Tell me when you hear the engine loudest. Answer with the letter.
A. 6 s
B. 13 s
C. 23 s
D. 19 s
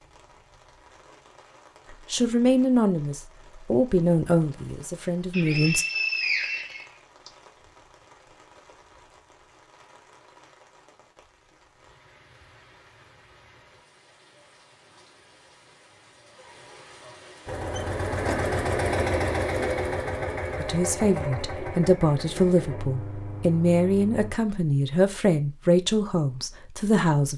D.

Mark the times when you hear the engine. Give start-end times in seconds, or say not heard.
17.4-24.4.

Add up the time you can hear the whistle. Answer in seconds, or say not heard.
2 s.